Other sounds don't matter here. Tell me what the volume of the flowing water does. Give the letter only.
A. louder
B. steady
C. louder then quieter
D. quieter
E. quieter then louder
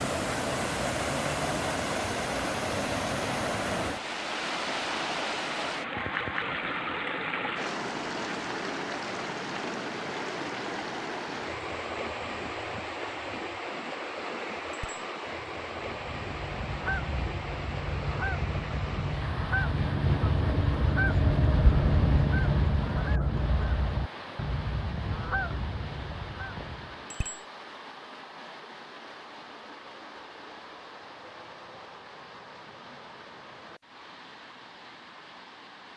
D.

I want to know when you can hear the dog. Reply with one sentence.
You can't hear the dog here.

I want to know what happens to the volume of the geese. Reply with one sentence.
The loudness of the geese goes up, then down.